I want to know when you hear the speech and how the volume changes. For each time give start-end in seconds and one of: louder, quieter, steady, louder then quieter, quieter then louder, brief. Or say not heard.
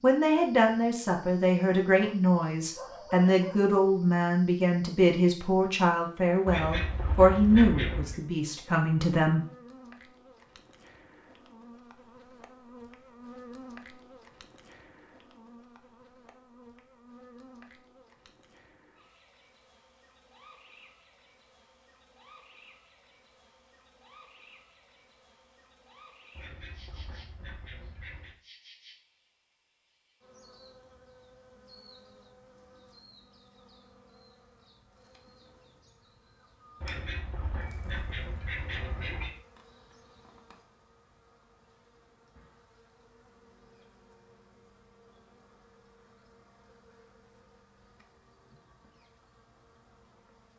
0.0-9.4 steady.